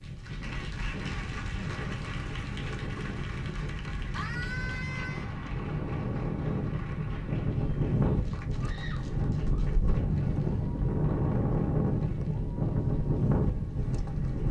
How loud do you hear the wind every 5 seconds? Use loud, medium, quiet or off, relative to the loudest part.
medium, loud, loud.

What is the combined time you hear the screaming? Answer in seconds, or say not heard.
2 s.